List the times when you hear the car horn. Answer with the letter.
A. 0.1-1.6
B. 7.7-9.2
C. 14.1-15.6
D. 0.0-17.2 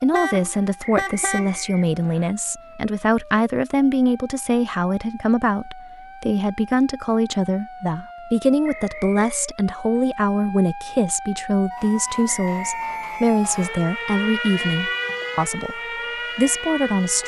A.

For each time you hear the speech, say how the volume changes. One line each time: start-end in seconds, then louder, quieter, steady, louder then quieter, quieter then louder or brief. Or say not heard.
0.0-17.2 steady.